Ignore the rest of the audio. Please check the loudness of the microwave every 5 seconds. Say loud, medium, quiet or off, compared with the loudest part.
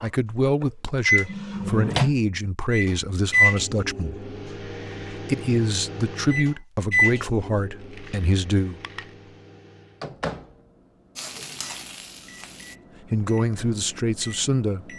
loud, medium, quiet.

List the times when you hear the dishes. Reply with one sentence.
You can't hear the dishes here.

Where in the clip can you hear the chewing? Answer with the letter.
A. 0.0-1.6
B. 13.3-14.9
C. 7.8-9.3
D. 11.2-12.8
C.